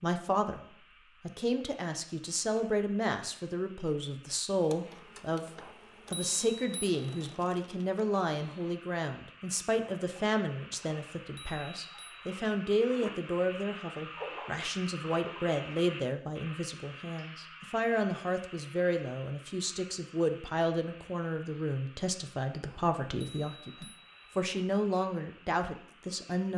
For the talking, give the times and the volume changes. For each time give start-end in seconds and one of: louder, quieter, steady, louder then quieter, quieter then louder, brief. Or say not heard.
0.0-0.6 brief
1.2-26.5 steady.